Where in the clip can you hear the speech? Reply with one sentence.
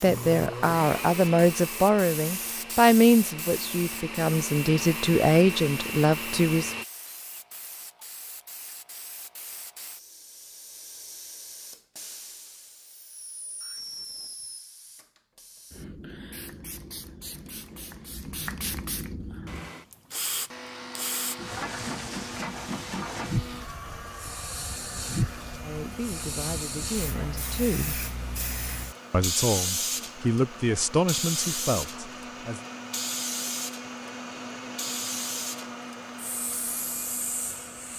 You can hear the speech from 0.0 to 6.8 s, from 25.6 to 28.1 s and from 29.1 to 32.6 s.